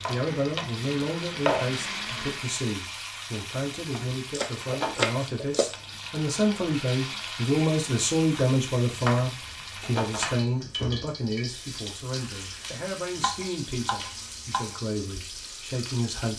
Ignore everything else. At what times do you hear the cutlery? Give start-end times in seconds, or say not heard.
not heard.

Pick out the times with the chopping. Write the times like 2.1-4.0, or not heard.
0.1-1.6, 4.3-5.8, 8.3-10.4, 13.2-14.8.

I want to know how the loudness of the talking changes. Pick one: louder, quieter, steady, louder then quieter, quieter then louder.
louder then quieter.